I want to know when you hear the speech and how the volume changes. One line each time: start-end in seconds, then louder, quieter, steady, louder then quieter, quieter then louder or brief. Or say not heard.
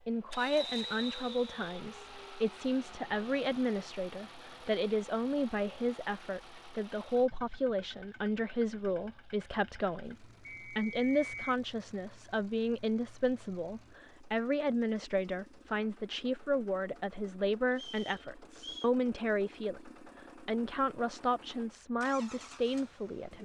0.1-23.3 steady.